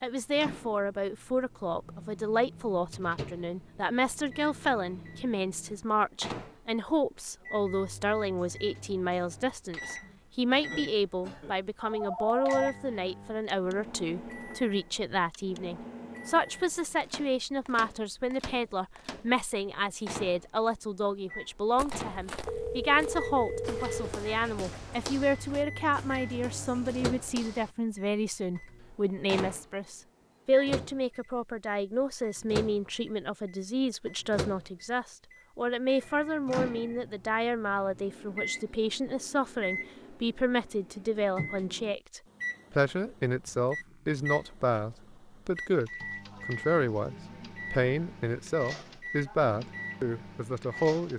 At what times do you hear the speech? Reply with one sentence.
The speech can be heard from 0.0 to 51.1 s.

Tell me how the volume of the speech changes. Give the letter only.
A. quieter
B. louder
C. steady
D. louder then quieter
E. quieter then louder
C.